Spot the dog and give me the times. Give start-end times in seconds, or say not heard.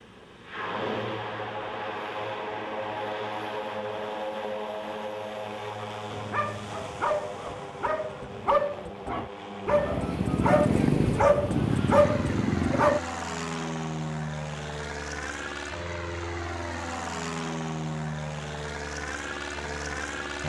6.1-13.0.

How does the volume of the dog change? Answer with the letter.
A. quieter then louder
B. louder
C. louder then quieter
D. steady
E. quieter
B.